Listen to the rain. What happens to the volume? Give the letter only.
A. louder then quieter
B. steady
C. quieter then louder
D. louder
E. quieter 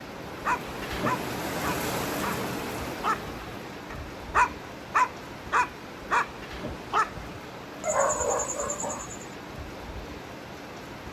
E.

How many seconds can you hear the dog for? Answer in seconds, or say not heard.
9 s.